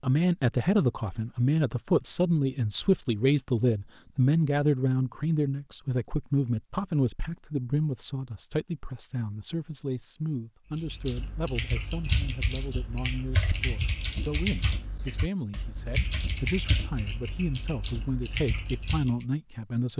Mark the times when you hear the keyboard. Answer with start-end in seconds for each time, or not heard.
10.8-19.2.